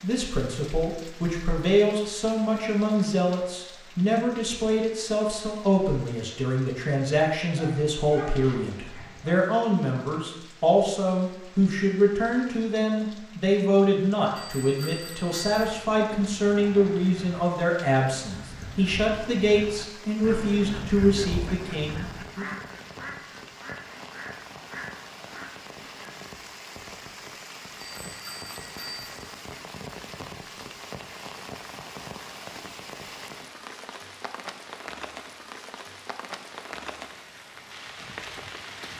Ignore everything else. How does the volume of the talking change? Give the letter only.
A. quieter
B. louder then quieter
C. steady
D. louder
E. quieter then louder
C.